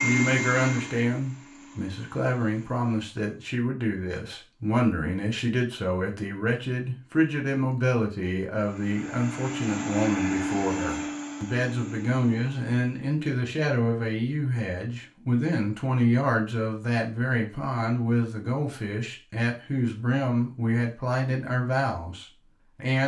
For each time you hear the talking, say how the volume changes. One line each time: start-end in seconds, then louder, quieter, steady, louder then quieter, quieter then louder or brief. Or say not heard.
0.0-23.0 steady.